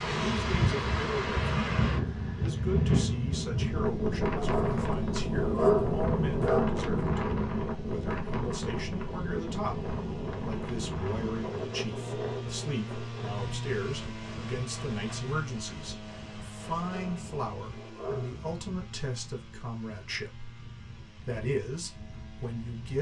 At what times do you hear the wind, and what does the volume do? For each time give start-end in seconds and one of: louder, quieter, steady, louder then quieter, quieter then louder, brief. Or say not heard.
0.0-22.9 quieter.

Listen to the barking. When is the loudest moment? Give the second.
6 s.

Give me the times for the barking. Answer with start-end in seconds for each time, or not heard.
4.3-6.8, 16.8-18.4.